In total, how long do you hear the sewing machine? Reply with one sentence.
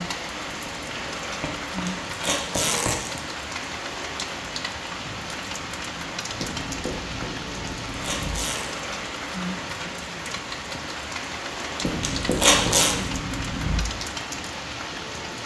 The sewing machine can't be heard in this clip.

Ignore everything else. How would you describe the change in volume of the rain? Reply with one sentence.
The loudness of the rain stays about the same.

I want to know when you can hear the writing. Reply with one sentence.
The writing can be heard from 1.2 to 3.0 s, from 6.3 to 8.4 s and from 11.8 to 13.8 s.